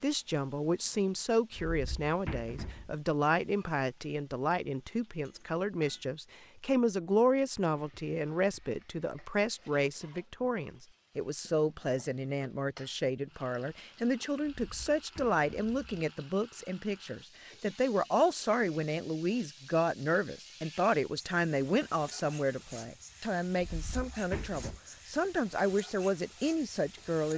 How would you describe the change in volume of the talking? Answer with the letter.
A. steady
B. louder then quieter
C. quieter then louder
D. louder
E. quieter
A.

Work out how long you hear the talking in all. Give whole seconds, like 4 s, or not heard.
27 s.